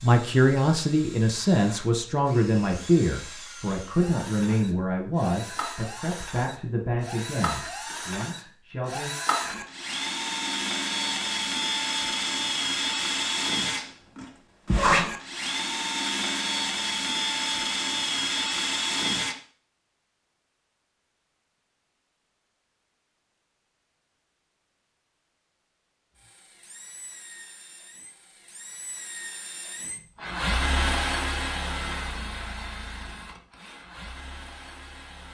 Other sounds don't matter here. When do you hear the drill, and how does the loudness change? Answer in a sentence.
The drill can be heard from 0.0 to 19.4 s, getting louder; and from 26.1 to 35.2 s, getting louder then quieter.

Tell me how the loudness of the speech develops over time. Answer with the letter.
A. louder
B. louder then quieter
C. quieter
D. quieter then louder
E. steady
C.